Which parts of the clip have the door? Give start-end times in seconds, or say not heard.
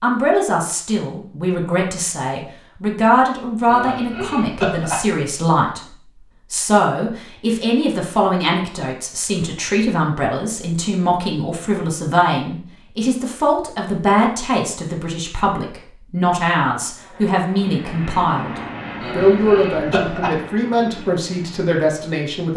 not heard.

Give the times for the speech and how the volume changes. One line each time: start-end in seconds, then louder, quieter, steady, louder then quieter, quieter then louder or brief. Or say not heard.
0.0-22.5 steady.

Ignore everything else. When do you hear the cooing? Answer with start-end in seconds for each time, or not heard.
not heard.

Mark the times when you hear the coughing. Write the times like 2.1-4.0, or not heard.
3.6-5.0, 19.0-20.4.